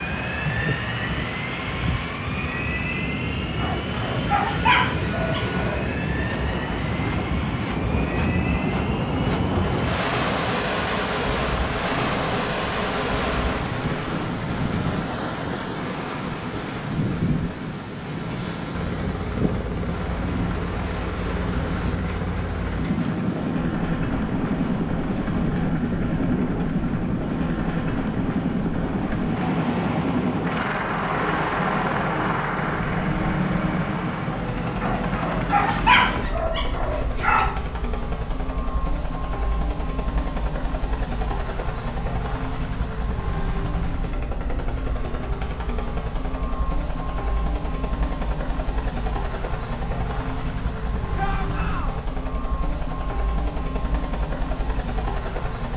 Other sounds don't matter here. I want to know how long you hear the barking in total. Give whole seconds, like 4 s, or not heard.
5 s.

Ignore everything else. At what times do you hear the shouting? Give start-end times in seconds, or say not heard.
51.1-52.0.